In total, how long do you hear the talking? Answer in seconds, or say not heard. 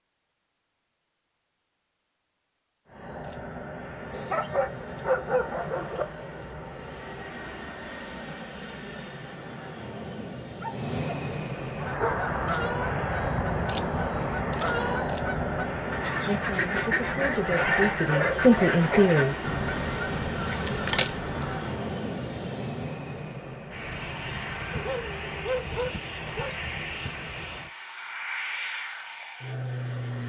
3 s.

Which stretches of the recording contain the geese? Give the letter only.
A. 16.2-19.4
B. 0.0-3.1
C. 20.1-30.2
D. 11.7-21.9
D.